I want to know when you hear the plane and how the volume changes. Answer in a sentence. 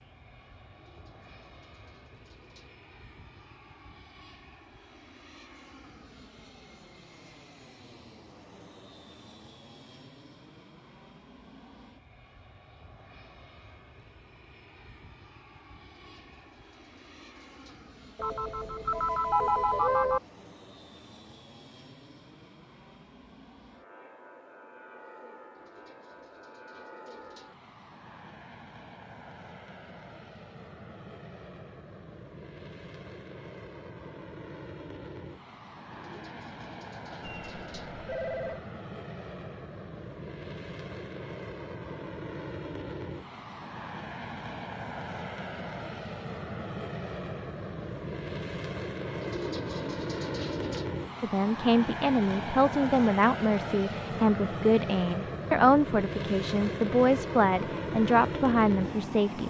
The plane can be heard from 0.0 to 59.4 s, getting louder.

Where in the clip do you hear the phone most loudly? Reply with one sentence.
The volume of the phone peaks at 20 seconds.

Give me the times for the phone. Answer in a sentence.
The phone can be heard from 18.1 to 20.2 s and from 37.2 to 38.6 s.